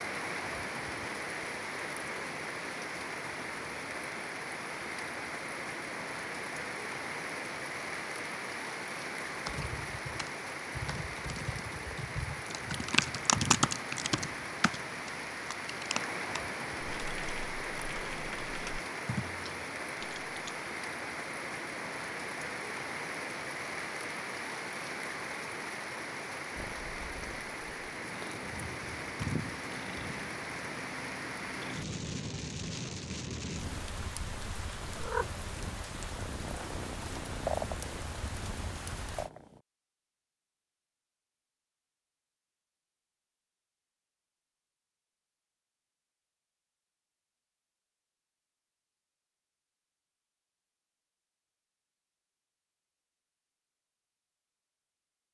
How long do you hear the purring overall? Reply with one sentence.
You can hear the purring for 13 seconds altogether.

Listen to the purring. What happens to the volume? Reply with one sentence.
The loudness of the purring goes up.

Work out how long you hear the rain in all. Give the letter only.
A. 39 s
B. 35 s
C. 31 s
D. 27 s
A.